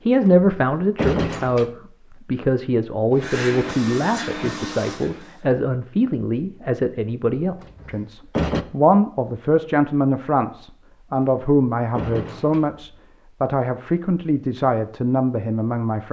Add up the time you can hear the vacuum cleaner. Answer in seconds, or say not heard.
2 s.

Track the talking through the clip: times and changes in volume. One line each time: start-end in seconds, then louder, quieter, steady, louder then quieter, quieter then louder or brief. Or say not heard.
0.1-16.0 steady.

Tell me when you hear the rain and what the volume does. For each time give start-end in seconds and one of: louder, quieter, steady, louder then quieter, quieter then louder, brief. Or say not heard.
not heard.